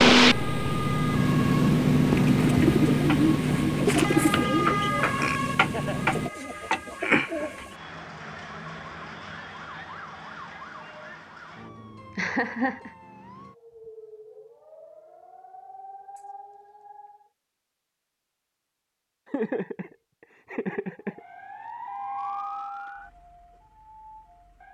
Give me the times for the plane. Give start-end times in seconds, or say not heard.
0.0-6.3.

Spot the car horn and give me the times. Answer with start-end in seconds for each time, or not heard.
not heard.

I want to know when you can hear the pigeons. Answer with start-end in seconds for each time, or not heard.
2.0-7.7.